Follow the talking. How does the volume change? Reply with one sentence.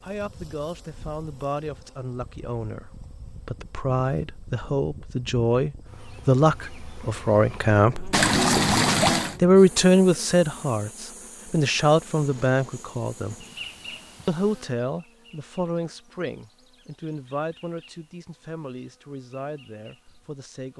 The loudness of the talking goes up, then down.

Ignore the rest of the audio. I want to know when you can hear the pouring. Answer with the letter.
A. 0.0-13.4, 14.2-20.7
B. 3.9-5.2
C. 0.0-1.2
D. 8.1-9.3
D.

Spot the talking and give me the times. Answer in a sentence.
You can hear the talking from 0.0 to 13.4 s and from 14.2 to 20.7 s.